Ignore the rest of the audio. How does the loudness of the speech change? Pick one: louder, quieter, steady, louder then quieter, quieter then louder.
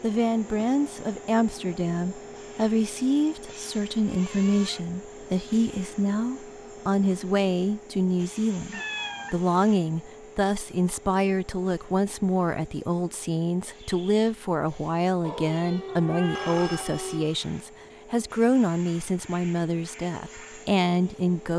steady.